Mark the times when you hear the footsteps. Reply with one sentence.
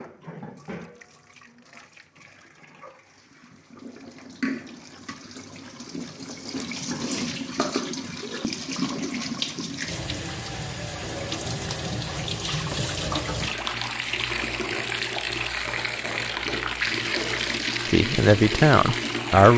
You can't hear the footsteps here.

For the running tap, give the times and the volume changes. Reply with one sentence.
The running tap can be heard from 0.0 to 19.5 s, getting louder.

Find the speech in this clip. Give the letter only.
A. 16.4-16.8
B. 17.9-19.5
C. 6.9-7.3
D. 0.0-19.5
B.